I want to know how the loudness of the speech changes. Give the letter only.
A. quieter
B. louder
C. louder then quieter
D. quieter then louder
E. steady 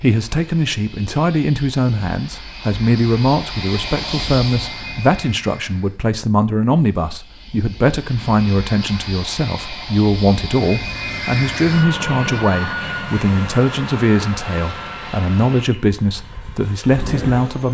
E.